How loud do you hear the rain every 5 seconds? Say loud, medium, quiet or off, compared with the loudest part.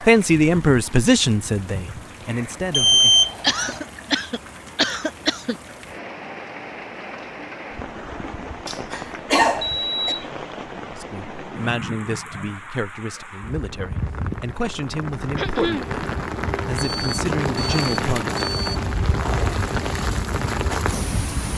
quiet, medium, medium, loud, loud.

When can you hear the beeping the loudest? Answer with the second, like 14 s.
3 s.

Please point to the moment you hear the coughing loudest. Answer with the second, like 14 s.
9 s.